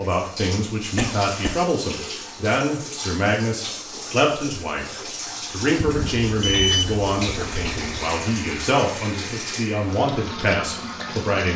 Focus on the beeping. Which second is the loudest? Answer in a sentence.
The volume of the beeping peaks at 7 seconds.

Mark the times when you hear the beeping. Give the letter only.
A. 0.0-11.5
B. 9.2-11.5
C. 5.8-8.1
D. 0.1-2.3
C.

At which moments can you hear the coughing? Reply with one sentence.
You can hear the coughing from 0.9 to 1.6 s and from 6.5 to 8.7 s.